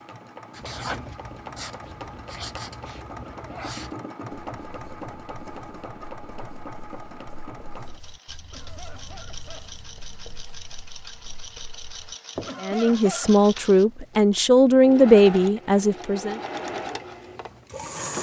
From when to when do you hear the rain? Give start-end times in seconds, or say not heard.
not heard.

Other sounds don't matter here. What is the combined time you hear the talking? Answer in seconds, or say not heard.
4 s.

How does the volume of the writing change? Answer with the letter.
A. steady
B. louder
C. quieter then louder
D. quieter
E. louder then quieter
C.